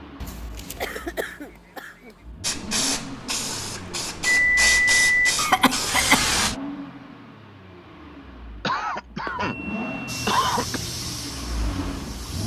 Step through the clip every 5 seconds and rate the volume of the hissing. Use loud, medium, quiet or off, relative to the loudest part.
loud, loud, medium.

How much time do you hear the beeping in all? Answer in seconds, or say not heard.
3 s.